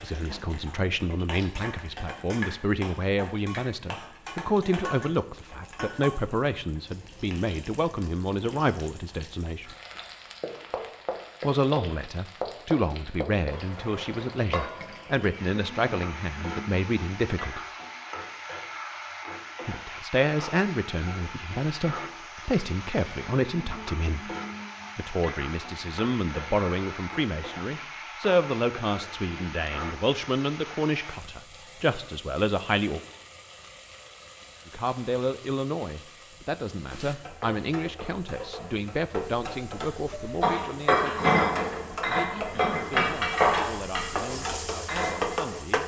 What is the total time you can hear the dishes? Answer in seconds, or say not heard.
5 s.